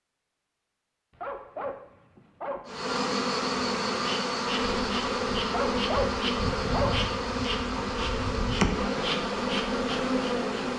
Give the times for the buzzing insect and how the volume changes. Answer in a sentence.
The buzzing insect can be heard from 2.6 to 10.7 s, at a steady volume.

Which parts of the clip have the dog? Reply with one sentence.
The dog can be heard from 1.1 to 2.9 s and from 5.5 to 7.1 s.